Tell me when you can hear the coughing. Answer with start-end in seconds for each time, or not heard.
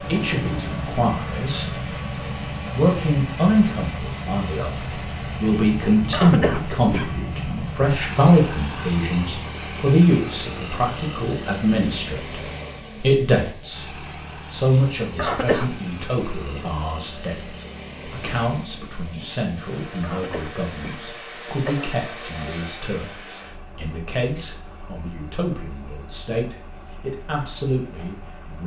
6.1-7.2, 15.2-15.8, 20.0-21.9.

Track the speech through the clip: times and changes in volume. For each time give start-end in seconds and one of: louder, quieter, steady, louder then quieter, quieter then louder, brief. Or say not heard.
0.0-1.8 brief
2.7-28.6 quieter.